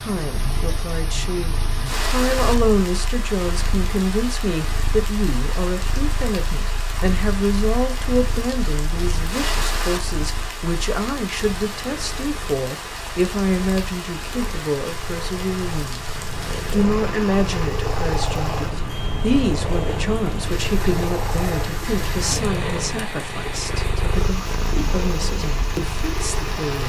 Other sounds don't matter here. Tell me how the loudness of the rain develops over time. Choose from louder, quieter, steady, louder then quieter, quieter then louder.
steady.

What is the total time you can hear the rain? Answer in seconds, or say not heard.
27 s.